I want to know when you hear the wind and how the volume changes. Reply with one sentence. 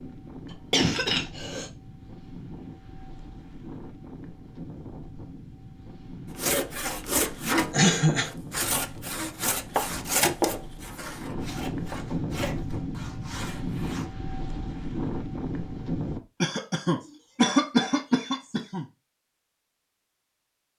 The wind can be heard from 0.0 to 16.2 s, getting louder.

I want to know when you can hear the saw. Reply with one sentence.
The saw can be heard from 6.3 to 14.1 s.